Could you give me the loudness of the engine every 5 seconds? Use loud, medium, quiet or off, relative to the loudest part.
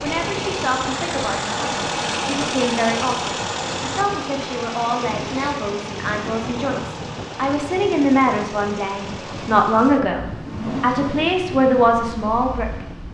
loud, medium, medium.